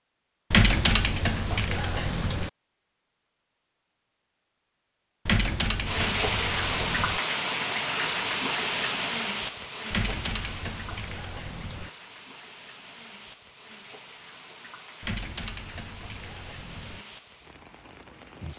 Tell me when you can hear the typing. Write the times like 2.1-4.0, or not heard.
0.5-2.5, 5.2-7.2, 9.9-11.9, 15.0-17.1.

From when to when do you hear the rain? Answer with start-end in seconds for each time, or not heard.
5.8-18.5.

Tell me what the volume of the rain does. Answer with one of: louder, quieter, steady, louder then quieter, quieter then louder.
quieter.